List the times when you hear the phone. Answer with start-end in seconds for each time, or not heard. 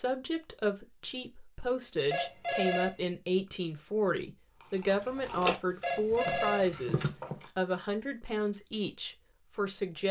2.1-3.0, 5.8-7.5.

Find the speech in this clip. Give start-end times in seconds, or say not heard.
0.0-10.0.